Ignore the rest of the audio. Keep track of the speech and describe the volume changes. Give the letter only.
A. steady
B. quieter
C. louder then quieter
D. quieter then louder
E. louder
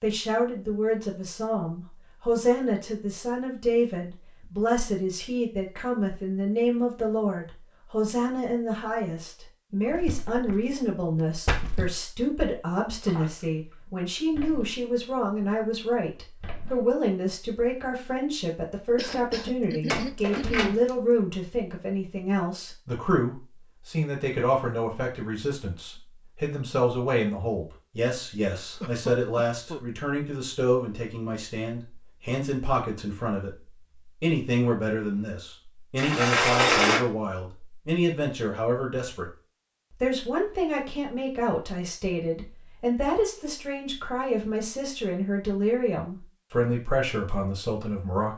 A.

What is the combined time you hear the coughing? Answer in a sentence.
The coughing can be heard for 3 seconds in total.